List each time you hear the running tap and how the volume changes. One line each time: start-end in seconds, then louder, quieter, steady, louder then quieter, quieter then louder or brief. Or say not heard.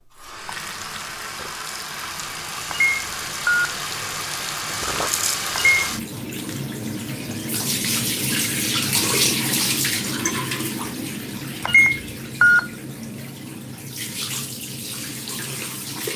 0.0-16.1 louder then quieter.